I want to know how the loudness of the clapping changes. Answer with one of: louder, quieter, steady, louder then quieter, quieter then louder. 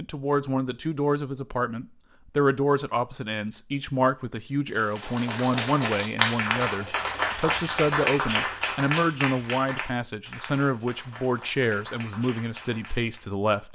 quieter.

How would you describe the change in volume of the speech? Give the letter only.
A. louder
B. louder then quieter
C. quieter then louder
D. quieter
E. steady
E.